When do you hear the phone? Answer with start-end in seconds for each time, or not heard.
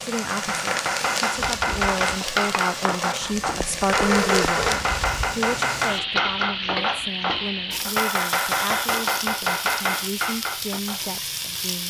3.2-4.8.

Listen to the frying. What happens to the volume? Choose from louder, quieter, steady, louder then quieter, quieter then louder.
steady.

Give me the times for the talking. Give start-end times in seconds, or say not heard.
0.0-11.8.